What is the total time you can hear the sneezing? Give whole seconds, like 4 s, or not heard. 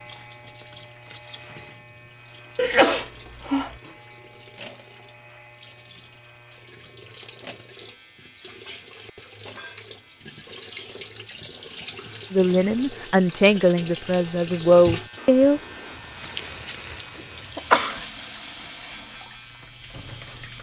2 s.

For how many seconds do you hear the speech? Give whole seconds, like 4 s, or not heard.
3 s.